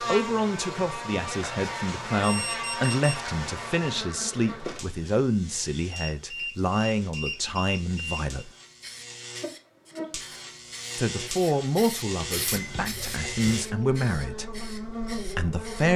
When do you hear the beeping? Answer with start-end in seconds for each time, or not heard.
2.2-3.2, 5.9-8.4, 12.5-13.6.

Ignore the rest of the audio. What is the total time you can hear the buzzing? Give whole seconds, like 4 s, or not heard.
16 s.